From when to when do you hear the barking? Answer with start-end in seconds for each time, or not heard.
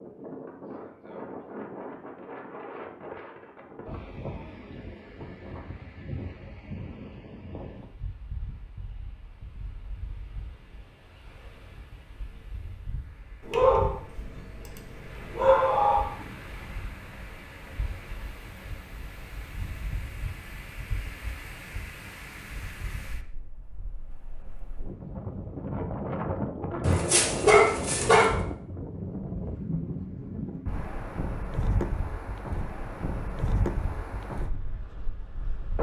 13.4-16.1, 26.8-28.3.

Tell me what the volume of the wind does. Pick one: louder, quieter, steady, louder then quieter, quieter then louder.
quieter then louder.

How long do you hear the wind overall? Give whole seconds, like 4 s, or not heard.
36 s.